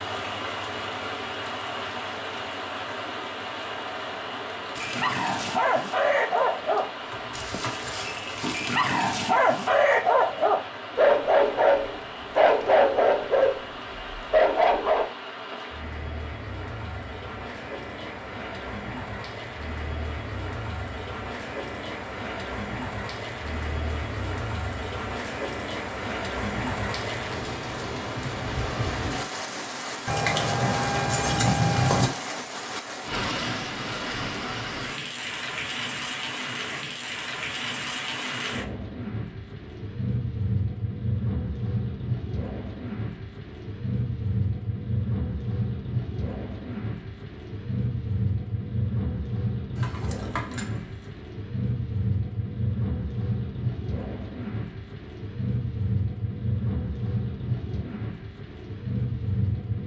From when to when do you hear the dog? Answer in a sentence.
You can hear the dog from 4.8 to 15.1 s.